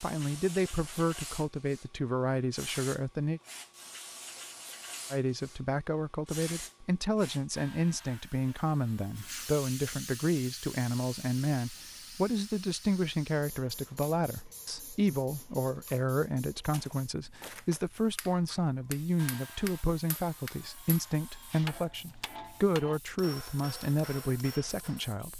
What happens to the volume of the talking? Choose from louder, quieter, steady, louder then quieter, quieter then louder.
steady.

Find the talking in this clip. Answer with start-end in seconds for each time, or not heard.
0.0-3.4, 5.1-25.3.